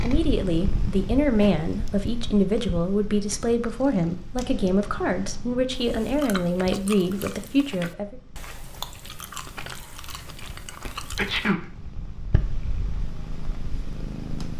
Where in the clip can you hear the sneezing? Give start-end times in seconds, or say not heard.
10.7-11.7.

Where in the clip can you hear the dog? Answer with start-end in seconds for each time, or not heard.
not heard.